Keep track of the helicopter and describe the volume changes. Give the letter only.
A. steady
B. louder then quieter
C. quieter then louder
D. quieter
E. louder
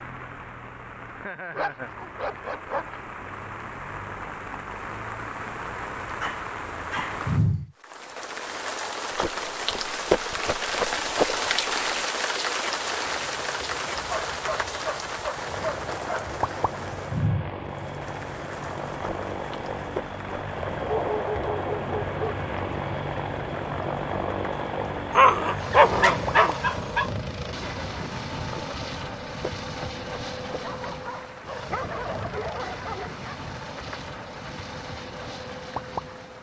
B.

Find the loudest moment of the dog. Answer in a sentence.
The loudest moment of the dog is at 26 seconds.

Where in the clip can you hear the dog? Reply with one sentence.
You can hear the dog from 1.5 to 3.0 s, from 6.2 to 7.5 s, from 14.1 to 16.4 s, from 20.8 to 22.4 s, from 25.1 to 27.1 s and from 30.6 to 33.5 s.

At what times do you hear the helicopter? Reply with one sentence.
The helicopter can be heard from 13.0 to 36.3 s.